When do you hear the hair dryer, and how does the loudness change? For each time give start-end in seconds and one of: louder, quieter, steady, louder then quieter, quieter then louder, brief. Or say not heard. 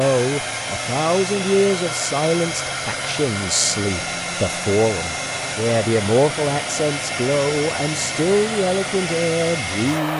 0.0-10.1 steady.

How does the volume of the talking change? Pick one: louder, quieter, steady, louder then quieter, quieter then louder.
steady.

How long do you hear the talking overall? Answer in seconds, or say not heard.
10 s.